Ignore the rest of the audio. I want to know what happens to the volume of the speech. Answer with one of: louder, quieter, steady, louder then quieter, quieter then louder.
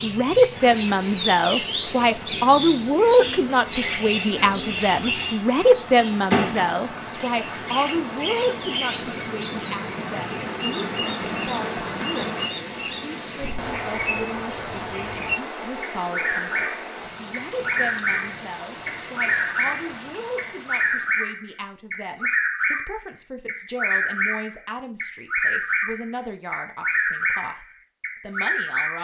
quieter.